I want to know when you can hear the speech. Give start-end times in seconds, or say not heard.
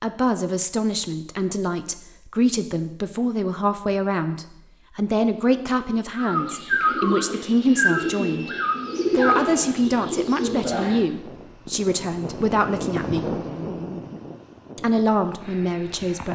0.0-8.5, 9.1-13.3, 14.8-16.3.